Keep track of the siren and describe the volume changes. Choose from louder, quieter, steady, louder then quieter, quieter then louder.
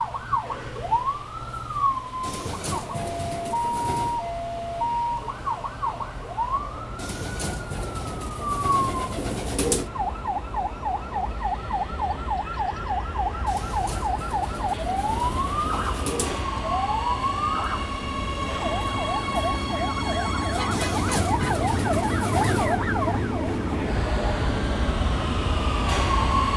steady.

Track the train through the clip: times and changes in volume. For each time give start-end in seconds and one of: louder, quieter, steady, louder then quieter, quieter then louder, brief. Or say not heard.
0.0-26.5 louder.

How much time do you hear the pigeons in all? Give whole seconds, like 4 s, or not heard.
10 s.